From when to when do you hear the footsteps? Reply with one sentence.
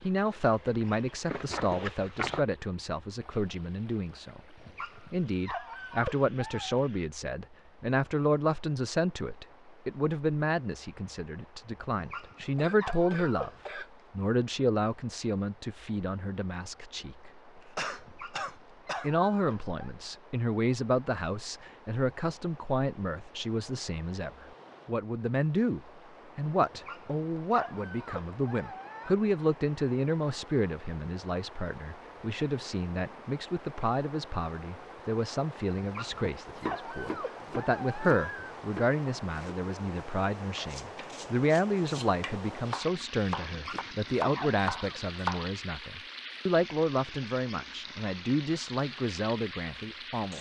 You can hear the footsteps from 0.0 to 2.5 s.